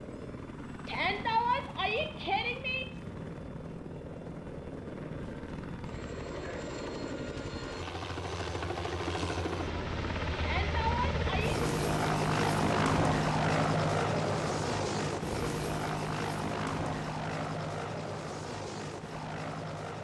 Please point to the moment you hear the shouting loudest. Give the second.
1 s.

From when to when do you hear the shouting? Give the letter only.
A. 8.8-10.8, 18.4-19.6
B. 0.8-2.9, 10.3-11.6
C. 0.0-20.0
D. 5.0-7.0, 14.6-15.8
B.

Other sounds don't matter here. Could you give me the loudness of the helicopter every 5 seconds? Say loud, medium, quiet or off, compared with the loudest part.
quiet, medium, loud, medium.